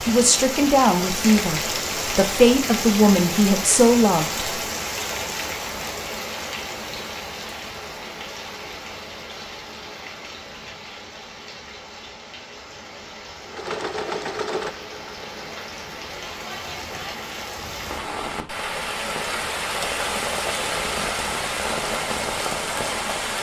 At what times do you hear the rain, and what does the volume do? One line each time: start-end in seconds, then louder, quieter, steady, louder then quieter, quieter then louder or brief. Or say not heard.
0.0-23.3 quieter then louder.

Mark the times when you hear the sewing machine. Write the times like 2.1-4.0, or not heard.
13.4-15.2.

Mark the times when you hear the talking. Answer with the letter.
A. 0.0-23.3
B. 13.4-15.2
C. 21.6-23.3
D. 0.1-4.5
D.